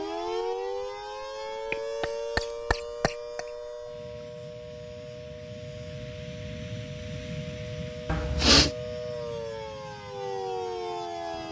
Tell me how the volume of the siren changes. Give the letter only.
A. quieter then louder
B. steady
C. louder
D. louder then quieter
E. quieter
A.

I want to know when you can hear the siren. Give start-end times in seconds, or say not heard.
0.0-11.4.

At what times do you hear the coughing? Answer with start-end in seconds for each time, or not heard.
1.7-3.5, 8.1-8.7.